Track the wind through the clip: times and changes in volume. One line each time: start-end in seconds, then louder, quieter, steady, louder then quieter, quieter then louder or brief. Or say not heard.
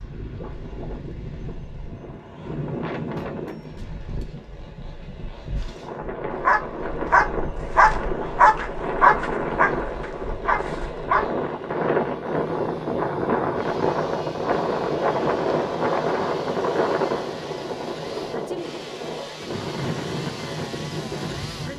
0.0-21.7 louder then quieter.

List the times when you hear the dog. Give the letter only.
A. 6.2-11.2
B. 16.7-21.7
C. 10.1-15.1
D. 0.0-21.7
A.